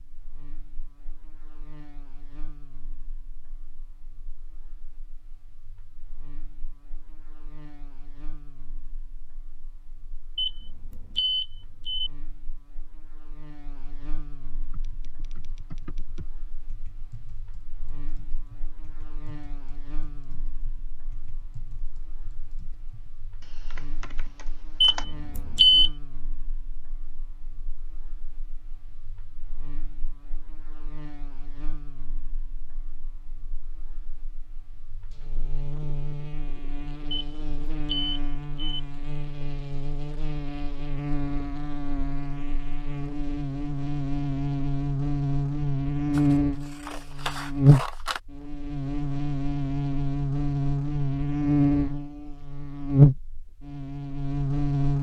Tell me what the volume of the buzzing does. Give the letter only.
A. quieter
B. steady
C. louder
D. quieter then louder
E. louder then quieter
C.